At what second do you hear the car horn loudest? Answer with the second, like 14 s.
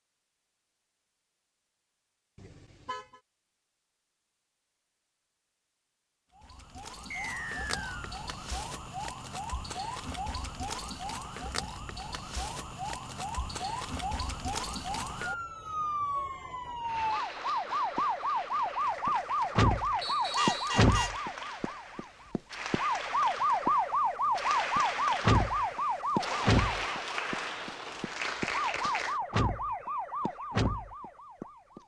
21 s.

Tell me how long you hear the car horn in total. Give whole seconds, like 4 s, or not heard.
2 s.